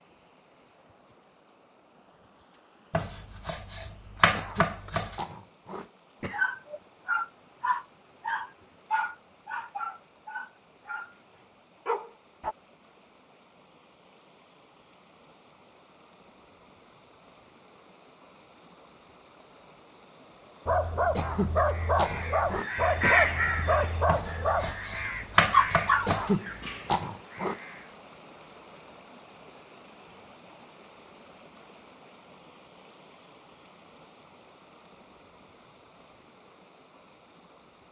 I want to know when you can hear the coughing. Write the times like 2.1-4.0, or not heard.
4.3-6.5, 21.1-23.2, 26.1-27.6.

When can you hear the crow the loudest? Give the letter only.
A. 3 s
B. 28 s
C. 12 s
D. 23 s
D.